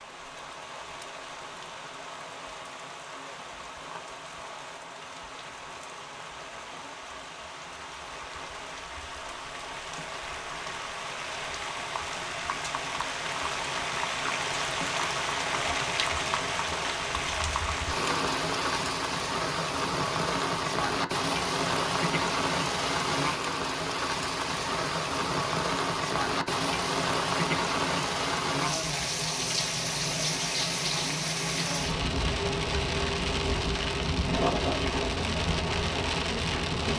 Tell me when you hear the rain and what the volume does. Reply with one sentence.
You can hear the rain from 0.0 to 36.9 s, getting louder.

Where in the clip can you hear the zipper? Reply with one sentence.
The zipper can be heard from 34.3 to 35.1 s.